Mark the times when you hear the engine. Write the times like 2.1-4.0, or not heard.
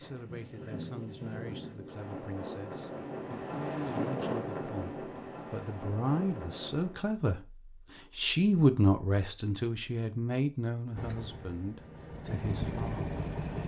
10.9-13.6.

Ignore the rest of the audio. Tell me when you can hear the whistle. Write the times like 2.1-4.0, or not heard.
not heard.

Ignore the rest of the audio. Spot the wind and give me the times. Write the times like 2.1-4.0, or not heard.
0.0-7.2.